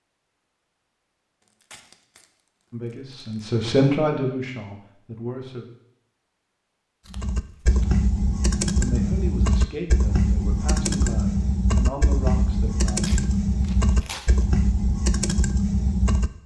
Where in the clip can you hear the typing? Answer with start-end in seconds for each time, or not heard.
7.1-16.3.